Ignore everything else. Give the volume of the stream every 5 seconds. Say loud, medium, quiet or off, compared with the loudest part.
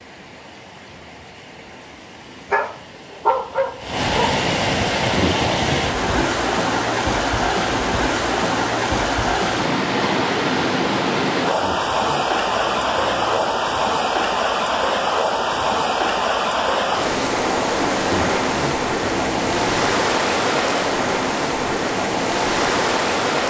medium, loud, loud, loud, loud.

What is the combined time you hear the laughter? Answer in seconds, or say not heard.
5 s.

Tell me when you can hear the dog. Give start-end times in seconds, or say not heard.
2.5-4.3.